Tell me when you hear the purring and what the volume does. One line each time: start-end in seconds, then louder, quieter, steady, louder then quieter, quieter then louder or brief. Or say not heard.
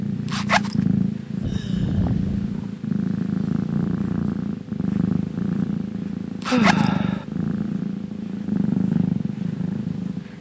0.0-10.3 steady.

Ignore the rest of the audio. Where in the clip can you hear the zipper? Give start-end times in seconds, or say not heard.
0.2-0.8, 6.4-7.0.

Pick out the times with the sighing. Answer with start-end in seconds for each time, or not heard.
1.4-2.5, 6.5-7.2.